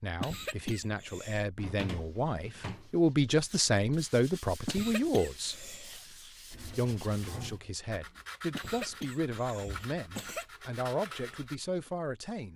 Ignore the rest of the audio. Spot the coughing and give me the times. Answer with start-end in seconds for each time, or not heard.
0.2-1.4, 4.7-6.0, 8.5-10.4.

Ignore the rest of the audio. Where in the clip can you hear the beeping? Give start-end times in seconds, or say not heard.
not heard.